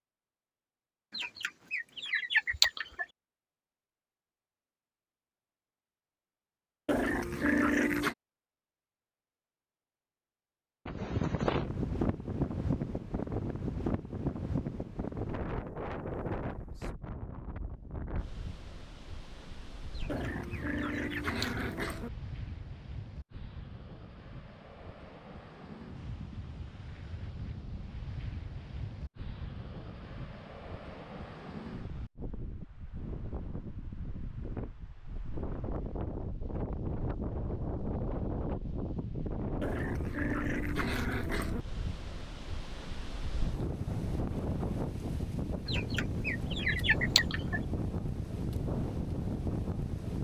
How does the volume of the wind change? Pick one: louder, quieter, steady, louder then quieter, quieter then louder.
quieter then louder.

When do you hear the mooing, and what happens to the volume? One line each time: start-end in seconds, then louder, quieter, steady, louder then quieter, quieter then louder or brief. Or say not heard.
not heard.